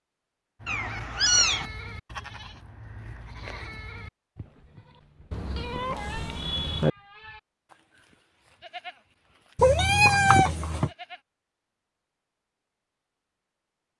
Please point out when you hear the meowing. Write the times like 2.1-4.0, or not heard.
0.7-1.6, 5.3-6.9, 9.6-10.9.